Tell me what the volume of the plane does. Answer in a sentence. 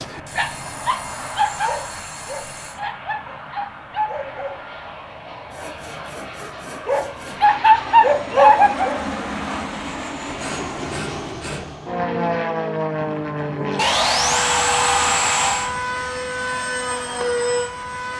The volume of the plane goes up.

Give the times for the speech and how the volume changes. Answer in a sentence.
The speech can't be heard in this clip.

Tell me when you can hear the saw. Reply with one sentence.
The saw can be heard from 0.2 to 2.8 s, from 5.5 to 7.4 s, from 10.2 to 11.8 s and from 13.8 to 15.8 s.